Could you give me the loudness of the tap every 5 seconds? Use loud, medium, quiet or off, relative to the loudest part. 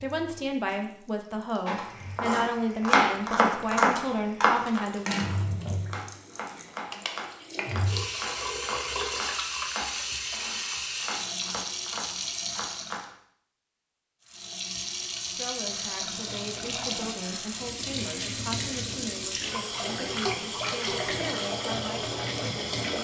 quiet, loud, loud, loud, loud.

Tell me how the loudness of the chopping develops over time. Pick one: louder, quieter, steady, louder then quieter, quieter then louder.
quieter.